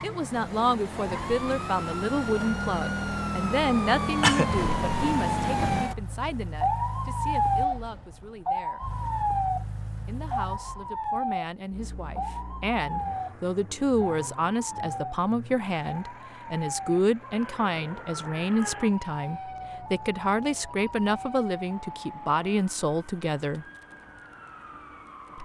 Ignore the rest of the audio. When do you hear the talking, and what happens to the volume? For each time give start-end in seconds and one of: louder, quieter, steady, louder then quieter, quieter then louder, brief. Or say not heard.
0.0-8.8 quieter
10.1-23.6 louder.